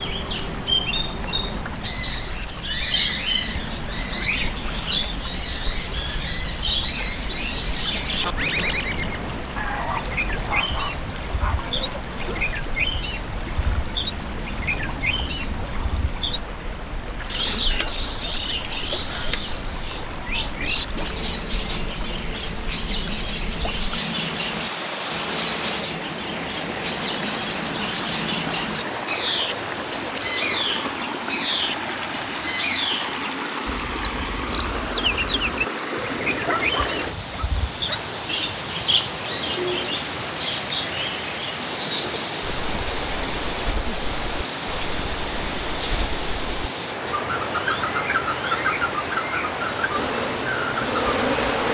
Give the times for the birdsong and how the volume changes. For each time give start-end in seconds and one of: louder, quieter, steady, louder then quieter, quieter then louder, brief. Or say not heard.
0.0-51.6 steady.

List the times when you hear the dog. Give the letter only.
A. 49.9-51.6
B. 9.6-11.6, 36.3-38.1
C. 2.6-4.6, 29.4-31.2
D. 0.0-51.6
B.